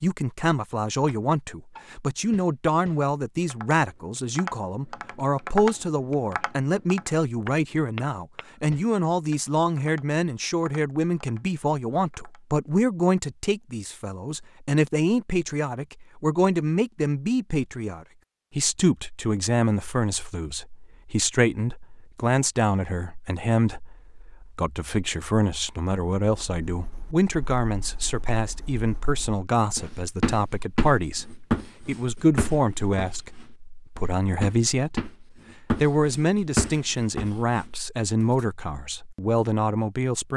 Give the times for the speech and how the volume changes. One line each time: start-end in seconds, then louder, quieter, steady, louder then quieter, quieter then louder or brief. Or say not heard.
0.0-40.3 steady.